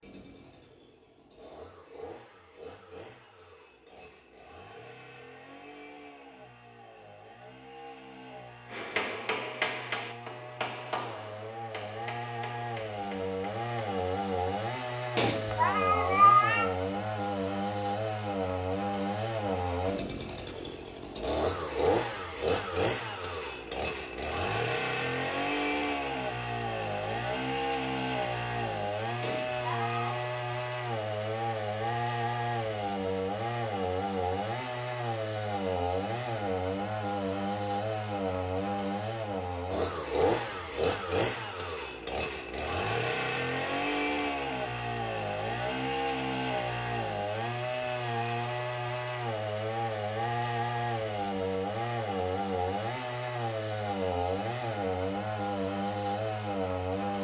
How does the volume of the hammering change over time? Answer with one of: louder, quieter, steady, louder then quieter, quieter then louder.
quieter.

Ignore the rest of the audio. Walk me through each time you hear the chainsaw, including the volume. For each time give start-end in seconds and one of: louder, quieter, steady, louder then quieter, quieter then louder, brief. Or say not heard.
0.0-57.1 louder.